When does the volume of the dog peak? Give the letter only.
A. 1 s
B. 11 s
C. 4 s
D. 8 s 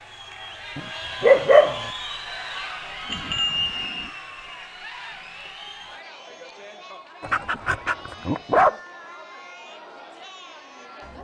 A.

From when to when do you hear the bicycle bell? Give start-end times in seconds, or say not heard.
3.1-4.1.